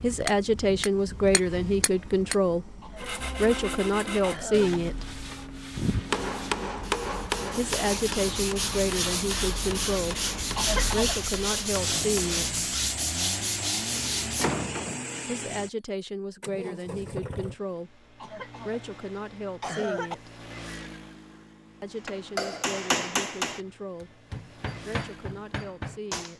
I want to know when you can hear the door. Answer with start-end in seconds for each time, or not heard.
13.9-15.1.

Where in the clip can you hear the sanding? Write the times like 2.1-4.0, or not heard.
3.0-14.5.